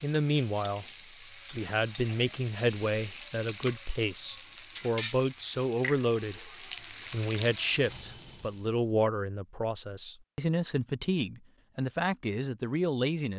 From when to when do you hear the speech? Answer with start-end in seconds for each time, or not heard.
0.0-0.8, 1.5-6.5, 7.1-13.3.